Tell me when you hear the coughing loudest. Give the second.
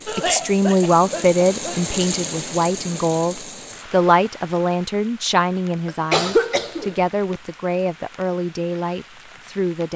6 s.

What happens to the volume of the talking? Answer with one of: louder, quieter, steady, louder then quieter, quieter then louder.
quieter.